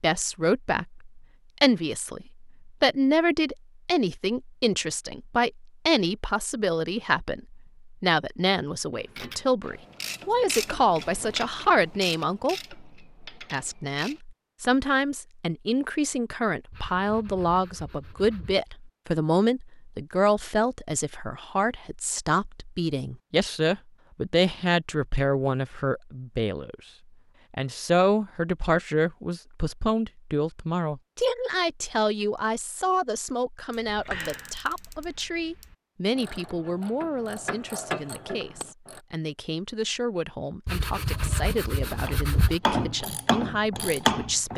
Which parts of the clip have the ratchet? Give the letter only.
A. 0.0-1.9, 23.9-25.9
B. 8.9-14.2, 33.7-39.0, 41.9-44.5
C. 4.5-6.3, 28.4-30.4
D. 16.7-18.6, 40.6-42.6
B.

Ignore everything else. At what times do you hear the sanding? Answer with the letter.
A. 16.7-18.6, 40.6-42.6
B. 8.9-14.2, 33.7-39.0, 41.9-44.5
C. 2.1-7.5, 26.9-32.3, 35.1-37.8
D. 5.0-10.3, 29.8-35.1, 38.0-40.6
A.